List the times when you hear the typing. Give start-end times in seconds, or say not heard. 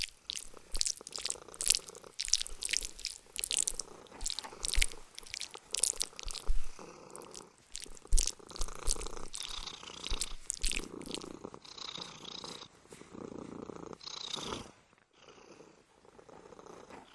not heard.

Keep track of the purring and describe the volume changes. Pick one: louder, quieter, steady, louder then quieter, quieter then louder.
louder.